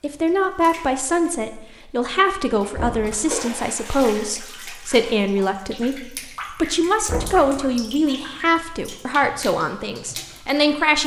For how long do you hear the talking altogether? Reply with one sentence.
The talking can be heard for 11 seconds in total.